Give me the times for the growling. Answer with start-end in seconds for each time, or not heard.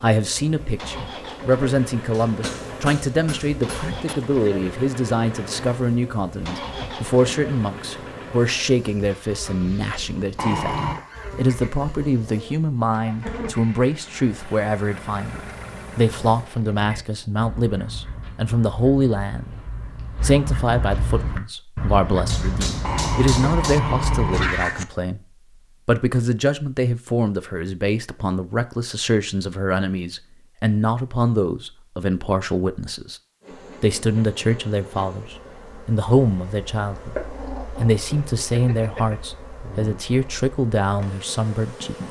10.3-11.0, 22.8-24.9, 37.2-39.1.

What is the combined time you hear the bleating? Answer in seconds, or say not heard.
not heard.